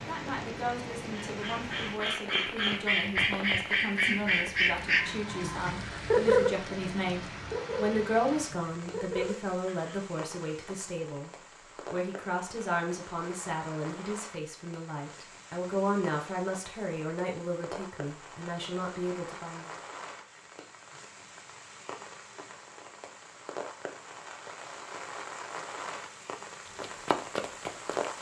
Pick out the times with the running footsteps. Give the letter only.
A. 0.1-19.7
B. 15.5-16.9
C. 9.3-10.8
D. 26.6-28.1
D.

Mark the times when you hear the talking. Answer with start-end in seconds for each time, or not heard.
0.1-19.7.